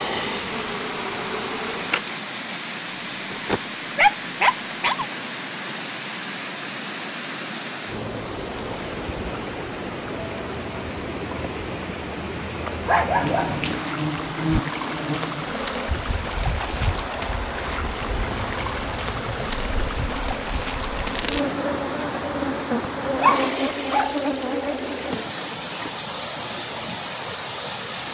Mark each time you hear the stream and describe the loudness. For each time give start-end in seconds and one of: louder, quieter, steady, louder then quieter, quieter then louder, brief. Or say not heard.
0.0-28.0 steady.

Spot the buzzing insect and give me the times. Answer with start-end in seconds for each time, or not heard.
0.0-2.1, 13.1-25.3.